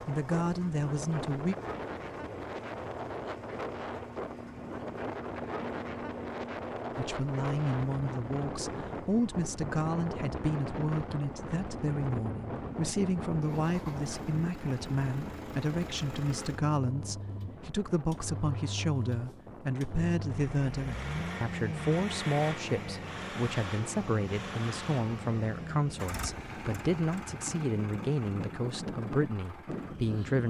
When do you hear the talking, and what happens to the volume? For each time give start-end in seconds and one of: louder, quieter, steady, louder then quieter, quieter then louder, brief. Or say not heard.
0.1-1.6 brief
7.0-30.4 steady.